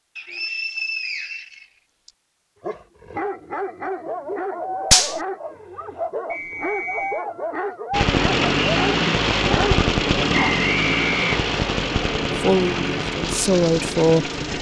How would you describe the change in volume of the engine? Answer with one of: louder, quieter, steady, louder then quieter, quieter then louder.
quieter.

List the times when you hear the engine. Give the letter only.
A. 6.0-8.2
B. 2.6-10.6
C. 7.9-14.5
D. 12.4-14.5
C.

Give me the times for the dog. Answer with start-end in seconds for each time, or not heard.
2.6-10.6.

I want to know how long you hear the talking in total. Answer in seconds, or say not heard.
2 s.